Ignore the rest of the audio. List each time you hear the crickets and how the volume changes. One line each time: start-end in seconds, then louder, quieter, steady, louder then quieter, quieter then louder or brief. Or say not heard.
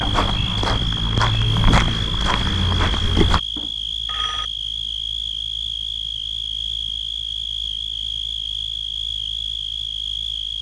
0.0-10.5 steady.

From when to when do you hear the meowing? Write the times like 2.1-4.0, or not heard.
not heard.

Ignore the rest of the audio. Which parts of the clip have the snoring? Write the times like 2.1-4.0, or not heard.
not heard.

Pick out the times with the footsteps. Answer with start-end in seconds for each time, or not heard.
0.0-3.4.